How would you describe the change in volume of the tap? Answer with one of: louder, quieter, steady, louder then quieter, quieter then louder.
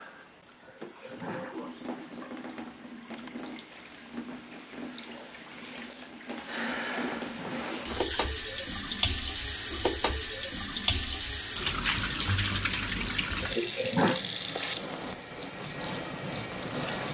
louder.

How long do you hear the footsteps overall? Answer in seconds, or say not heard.
not heard.